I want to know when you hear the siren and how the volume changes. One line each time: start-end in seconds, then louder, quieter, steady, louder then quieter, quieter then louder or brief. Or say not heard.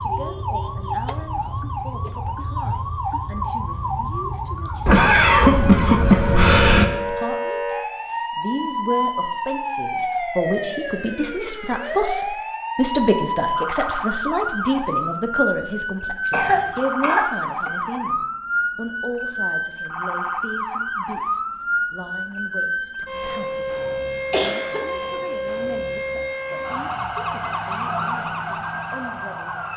0.0-29.7 steady.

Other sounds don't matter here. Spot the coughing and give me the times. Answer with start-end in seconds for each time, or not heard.
4.8-6.8, 16.3-17.7, 23.9-24.8.